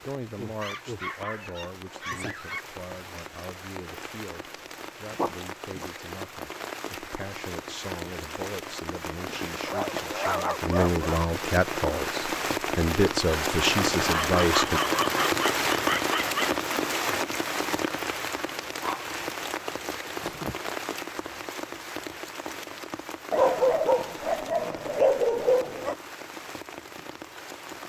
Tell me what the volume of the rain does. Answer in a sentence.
The volume of the rain goes up, then down.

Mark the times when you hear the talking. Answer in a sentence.
The talking can be heard from 0.0 to 14.8 s.